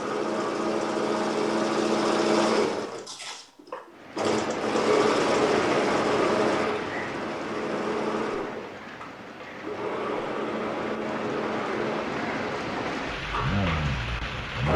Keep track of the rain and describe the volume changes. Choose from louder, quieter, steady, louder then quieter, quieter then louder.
quieter then louder.